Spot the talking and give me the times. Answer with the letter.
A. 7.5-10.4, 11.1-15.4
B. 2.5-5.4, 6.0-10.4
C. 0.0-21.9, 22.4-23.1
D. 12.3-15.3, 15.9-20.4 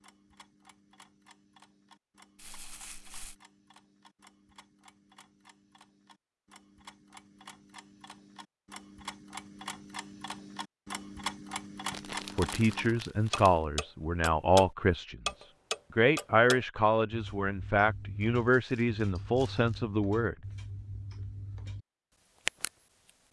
D.